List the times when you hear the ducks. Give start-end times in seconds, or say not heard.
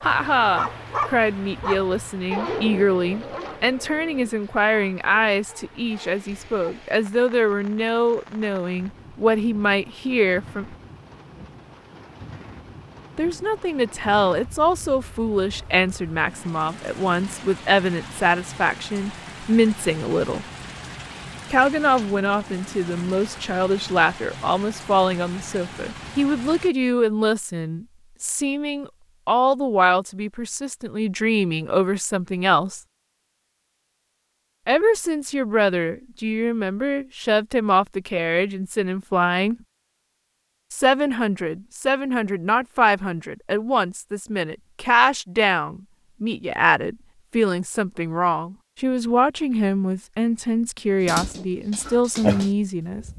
not heard.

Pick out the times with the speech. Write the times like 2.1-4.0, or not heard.
0.0-10.8, 13.2-20.4, 21.5-32.8, 34.6-39.5, 40.7-53.0.